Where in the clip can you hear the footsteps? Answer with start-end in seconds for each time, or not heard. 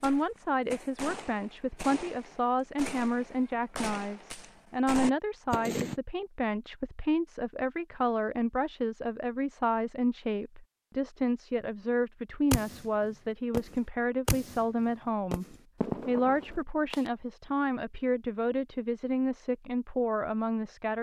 not heard.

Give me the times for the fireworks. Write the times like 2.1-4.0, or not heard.
0.0-6.0, 12.5-17.1.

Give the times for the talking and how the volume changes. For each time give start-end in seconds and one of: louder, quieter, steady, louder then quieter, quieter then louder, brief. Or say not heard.
0.0-20.9 steady.